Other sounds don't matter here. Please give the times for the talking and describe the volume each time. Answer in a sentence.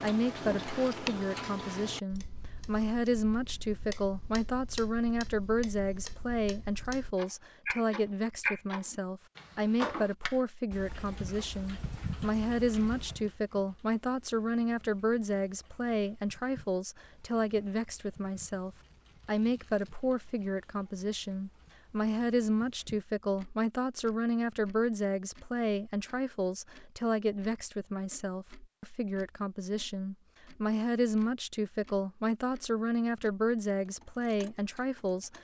The talking can be heard from 0.0 to 35.4 s, at a steady volume.